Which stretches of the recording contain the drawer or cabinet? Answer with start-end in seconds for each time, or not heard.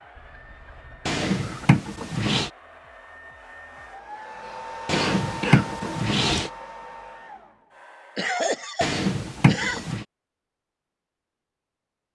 1.1-2.5, 4.8-6.5, 8.8-10.1.